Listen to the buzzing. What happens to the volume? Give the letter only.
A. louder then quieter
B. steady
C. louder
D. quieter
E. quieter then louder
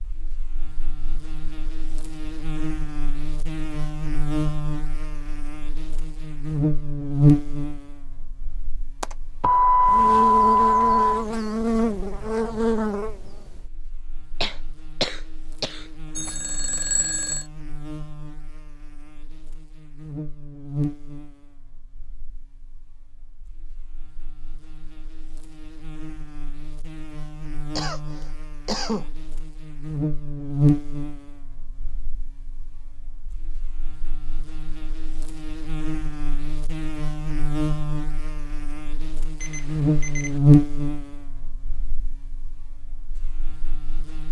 E.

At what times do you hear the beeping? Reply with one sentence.
You can hear the beeping from 9.0 to 11.2 s, from 16.1 to 17.4 s and from 39.4 to 40.4 s.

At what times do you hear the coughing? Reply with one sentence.
The coughing can be heard from 14.4 to 16.3 s and from 27.8 to 29.1 s.